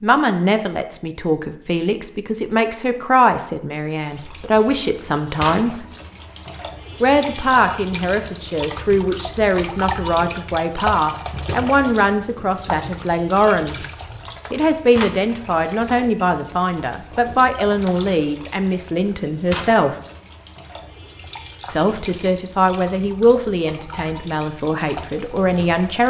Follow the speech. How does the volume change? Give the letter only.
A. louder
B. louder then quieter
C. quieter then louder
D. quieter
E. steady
E.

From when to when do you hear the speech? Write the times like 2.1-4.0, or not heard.
0.0-5.8, 7.0-13.8, 14.5-19.9, 21.7-26.0.